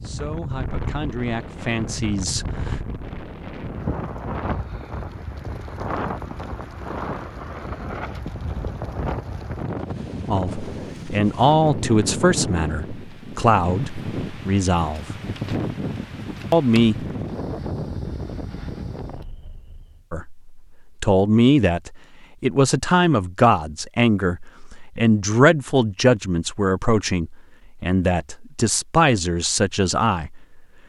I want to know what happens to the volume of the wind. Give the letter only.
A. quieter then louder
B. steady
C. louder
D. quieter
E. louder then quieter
B.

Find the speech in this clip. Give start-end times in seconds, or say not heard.
0.0-2.8, 10.3-15.1, 16.5-17.1, 20.1-30.6.